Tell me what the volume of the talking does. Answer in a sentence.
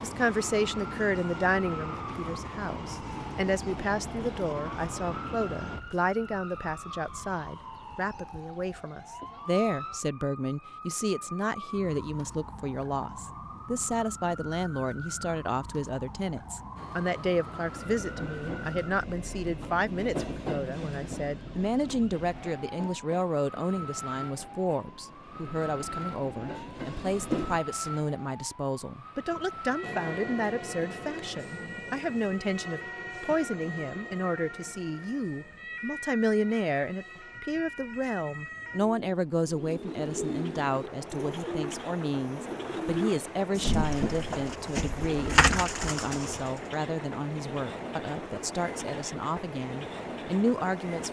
The loudness of the talking stays about the same.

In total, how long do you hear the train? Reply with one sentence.
You can hear the train for 38 seconds altogether.